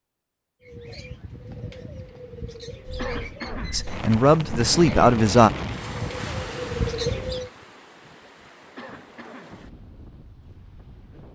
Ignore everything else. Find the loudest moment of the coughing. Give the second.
3 s.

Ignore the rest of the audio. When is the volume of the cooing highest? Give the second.
7 s.